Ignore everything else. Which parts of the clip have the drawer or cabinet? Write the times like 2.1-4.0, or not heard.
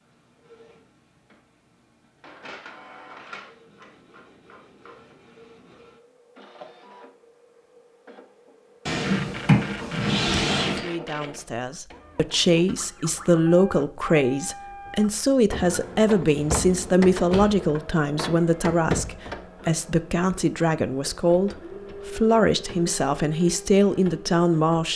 8.8-10.8, 16.2-17.6.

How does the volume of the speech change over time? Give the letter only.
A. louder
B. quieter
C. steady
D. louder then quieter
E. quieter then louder
C.